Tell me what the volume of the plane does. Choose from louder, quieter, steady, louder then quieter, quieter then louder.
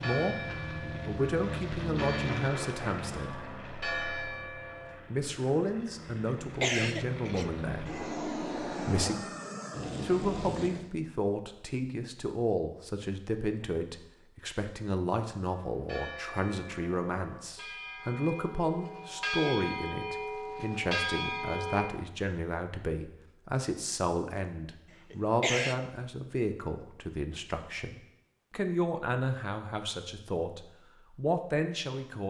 quieter then louder.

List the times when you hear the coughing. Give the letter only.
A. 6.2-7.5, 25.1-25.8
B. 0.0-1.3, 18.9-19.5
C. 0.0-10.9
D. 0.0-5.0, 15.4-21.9
A.